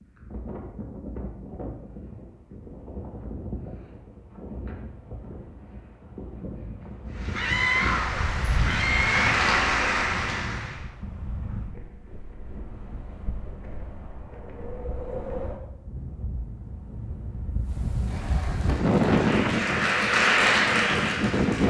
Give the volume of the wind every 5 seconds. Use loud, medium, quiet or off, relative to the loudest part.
quiet, medium, quiet, loud, loud.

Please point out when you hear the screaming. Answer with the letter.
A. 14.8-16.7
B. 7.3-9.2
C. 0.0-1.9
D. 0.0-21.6
B.